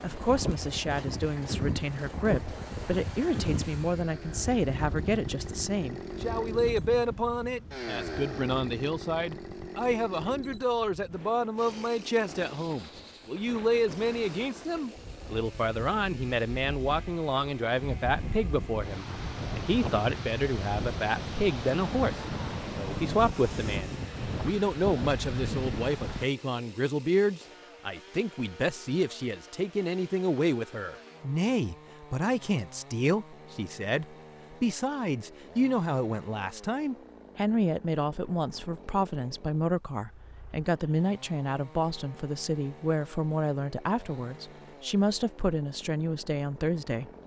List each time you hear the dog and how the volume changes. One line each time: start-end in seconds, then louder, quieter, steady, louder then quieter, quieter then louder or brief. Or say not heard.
not heard.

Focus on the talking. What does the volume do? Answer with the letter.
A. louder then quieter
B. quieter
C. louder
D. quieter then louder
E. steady
E.